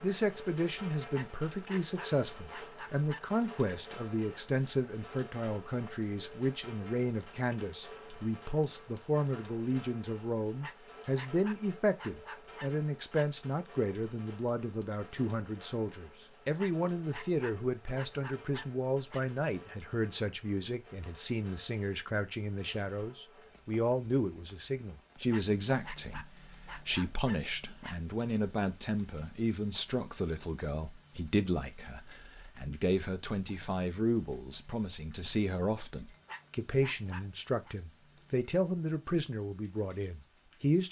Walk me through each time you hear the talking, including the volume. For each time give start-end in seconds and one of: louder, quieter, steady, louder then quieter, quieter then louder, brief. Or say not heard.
0.0-40.8 steady.